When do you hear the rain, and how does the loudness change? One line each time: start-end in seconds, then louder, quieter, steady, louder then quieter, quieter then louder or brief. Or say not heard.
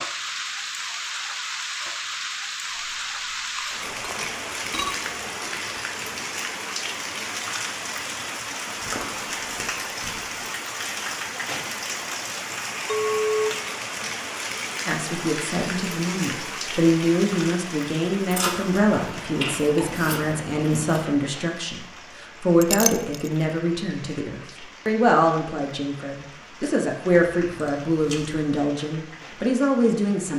0.0-30.3 quieter.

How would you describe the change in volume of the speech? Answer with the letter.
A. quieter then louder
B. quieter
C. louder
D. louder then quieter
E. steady
E.